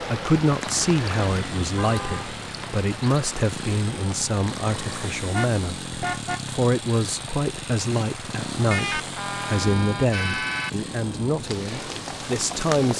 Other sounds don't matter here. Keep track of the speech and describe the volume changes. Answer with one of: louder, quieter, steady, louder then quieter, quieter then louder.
steady.